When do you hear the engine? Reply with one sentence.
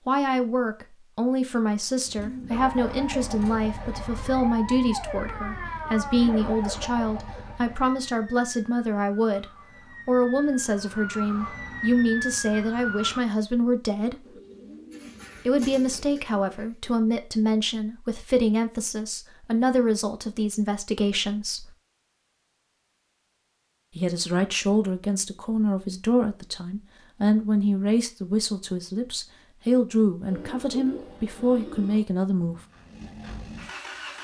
You can hear the engine from 32.5 to 34.2 s.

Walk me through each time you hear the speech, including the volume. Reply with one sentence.
You can hear the speech from 0.1 to 14.2 s, at a steady volume; from 15.4 to 21.7 s, at a steady volume; and from 23.9 to 32.6 s, at a steady volume.